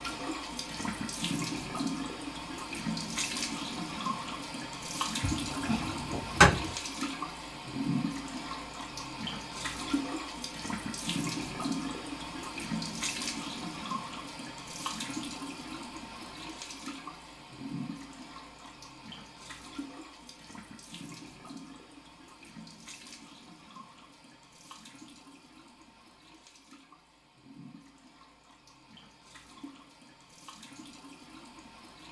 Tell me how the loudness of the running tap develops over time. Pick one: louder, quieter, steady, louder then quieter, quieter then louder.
quieter.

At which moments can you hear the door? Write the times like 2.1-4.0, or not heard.
5.2-6.7.